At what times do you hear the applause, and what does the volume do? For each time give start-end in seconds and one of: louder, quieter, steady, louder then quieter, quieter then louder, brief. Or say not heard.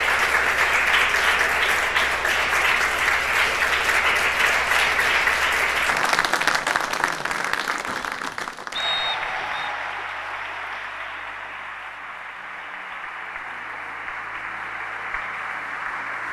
0.0-16.2 quieter.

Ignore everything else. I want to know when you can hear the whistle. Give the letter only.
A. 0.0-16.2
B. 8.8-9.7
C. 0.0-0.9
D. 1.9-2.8
B.